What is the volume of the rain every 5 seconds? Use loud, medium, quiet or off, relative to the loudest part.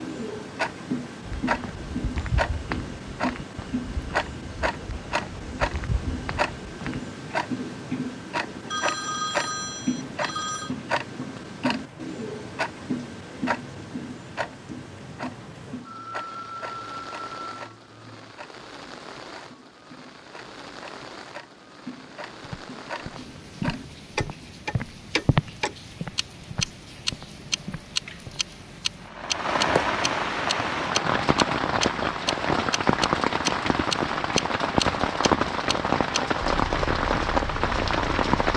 quiet, quiet, quiet, quiet, quiet, medium, loud, loud.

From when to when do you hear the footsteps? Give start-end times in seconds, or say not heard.
1.2-7.0, 22.4-28.4.